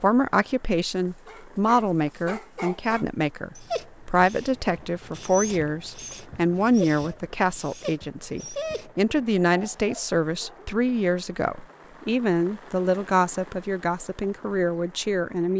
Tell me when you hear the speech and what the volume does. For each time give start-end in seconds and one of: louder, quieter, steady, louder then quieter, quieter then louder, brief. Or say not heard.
0.0-15.5 steady.